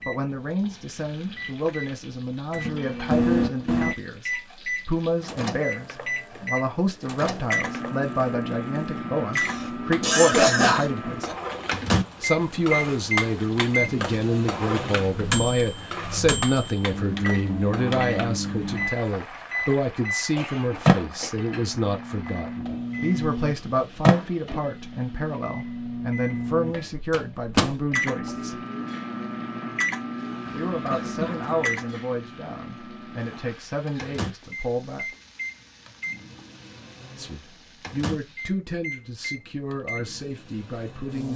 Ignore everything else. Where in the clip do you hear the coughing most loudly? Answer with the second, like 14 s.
11 s.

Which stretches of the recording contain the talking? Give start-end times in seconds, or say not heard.
0.1-11.3, 12.2-28.6, 30.5-35.0, 37.1-41.3.